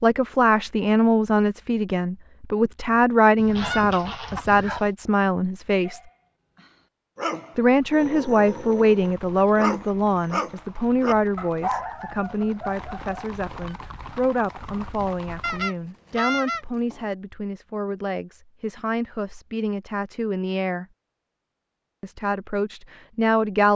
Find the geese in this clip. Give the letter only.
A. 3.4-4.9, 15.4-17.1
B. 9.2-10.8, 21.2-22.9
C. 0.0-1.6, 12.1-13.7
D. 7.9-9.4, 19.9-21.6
A.